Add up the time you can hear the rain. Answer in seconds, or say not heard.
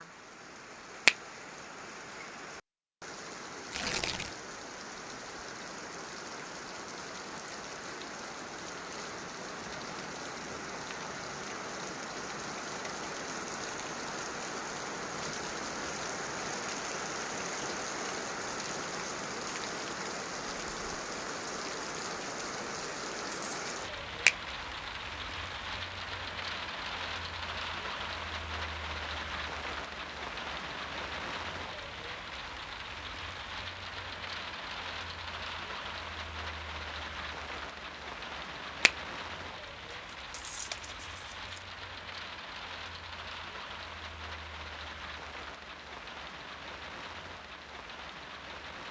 49 s.